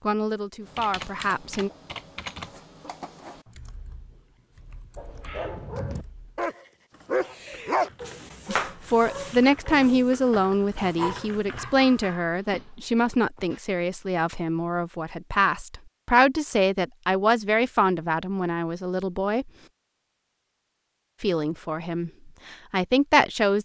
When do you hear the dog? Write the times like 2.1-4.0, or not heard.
5.0-13.6.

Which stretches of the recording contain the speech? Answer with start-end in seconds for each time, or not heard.
0.0-1.7, 8.4-19.5, 21.2-23.6.